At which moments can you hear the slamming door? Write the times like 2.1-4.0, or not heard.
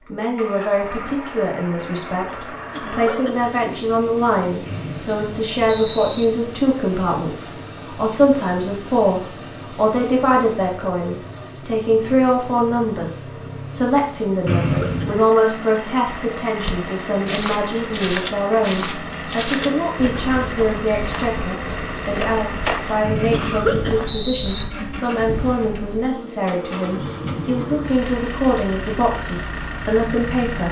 not heard.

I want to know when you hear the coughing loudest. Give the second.
24 s.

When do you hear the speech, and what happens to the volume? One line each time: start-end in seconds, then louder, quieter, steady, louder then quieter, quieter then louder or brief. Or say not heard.
0.0-30.6 steady.